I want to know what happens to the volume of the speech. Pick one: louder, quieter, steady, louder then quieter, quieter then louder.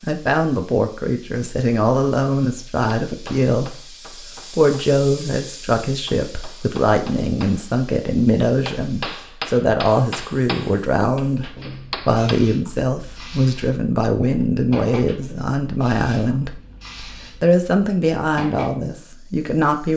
steady.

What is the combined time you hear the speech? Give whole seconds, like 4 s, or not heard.
20 s.